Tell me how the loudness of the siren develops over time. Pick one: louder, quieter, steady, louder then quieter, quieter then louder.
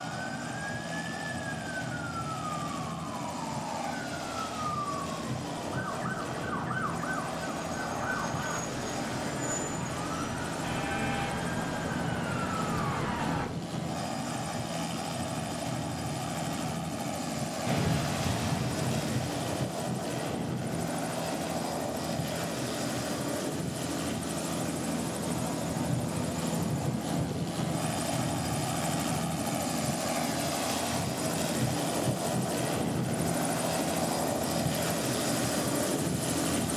louder.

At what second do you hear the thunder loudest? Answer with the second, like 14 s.
18 s.